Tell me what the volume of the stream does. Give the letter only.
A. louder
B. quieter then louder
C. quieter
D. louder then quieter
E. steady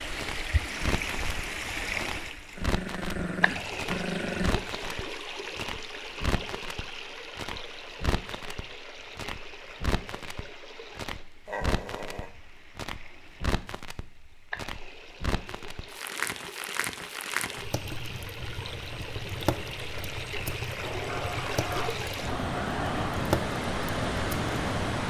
B.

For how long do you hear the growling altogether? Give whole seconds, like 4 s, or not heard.
5 s.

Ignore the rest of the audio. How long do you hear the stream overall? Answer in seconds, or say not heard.
25 s.